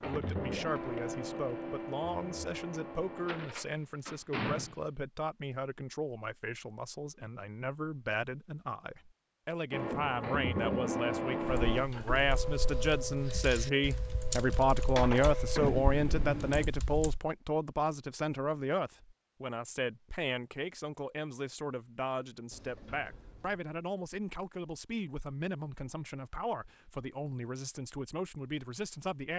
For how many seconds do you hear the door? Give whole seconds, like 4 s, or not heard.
3 s.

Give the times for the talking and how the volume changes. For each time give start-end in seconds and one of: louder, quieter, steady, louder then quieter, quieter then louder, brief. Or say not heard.
0.0-29.3 louder then quieter.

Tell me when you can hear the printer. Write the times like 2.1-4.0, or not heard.
0.0-3.5, 9.7-16.7.